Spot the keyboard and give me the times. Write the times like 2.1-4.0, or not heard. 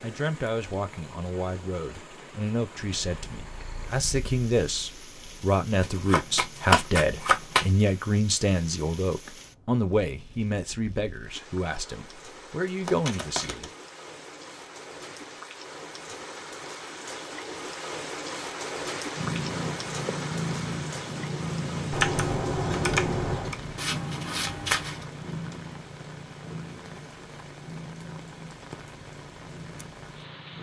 21.9-23.6.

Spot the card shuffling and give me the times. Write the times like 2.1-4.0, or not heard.
5.8-7.7, 12.8-13.8, 23.8-25.1.